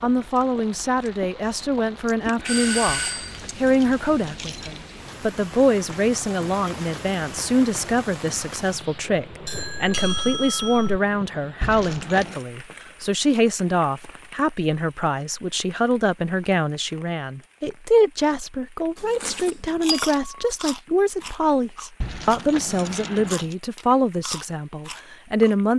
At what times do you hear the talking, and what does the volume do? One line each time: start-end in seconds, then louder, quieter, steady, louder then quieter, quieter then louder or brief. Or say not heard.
0.0-25.7 steady.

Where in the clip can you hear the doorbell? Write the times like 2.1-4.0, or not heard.
2.5-3.4, 9.4-11.0, 18.9-20.5.